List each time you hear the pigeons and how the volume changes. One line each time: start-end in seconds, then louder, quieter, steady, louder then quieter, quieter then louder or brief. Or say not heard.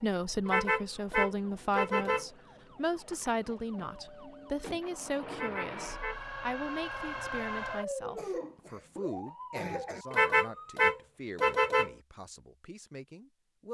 not heard.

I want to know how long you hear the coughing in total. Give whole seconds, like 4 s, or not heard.
2 s.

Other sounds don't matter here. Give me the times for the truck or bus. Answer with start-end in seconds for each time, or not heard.
not heard.